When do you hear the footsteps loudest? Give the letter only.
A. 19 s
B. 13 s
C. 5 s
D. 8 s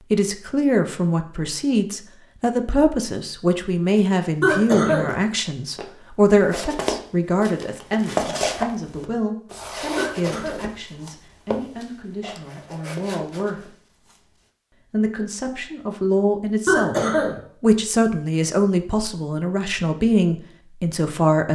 D.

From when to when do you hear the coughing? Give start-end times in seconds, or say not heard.
4.4-5.2, 9.9-10.7, 16.6-17.4.